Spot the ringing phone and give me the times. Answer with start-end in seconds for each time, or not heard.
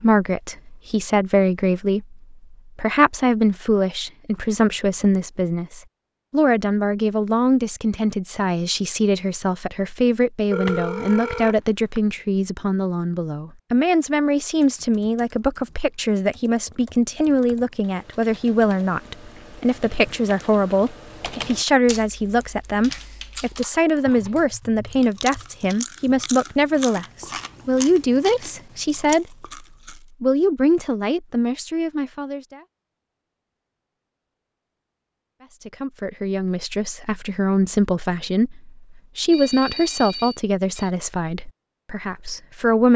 10.5-12.0, 39.3-40.9.